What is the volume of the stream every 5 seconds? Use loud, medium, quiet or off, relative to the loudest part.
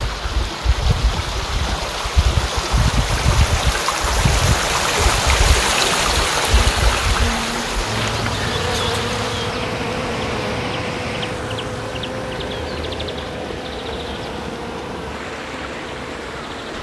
loud, loud, medium, medium.